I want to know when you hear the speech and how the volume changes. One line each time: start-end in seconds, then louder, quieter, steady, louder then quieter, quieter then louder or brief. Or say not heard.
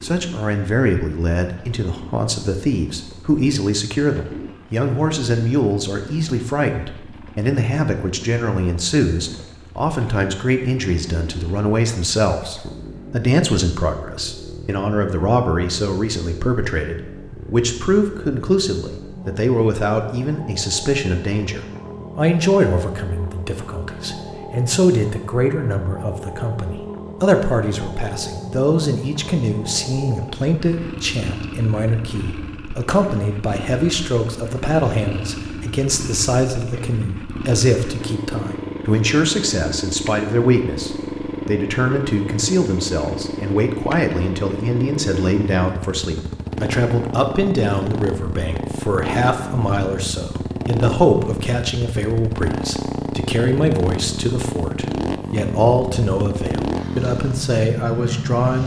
0.0-58.6 steady.